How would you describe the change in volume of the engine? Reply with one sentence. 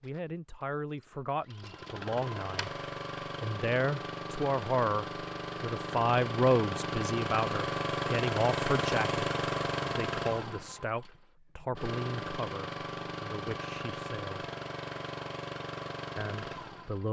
The loudness of the engine goes up, then down.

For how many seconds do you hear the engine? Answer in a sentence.
The engine can be heard for 17 seconds in total.